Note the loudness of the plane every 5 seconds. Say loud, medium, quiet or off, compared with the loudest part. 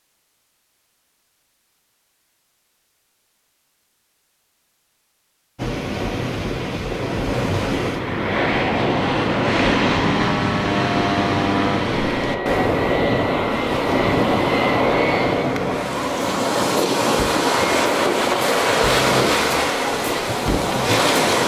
off, loud, loud, loud, loud.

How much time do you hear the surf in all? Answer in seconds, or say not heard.
16 s.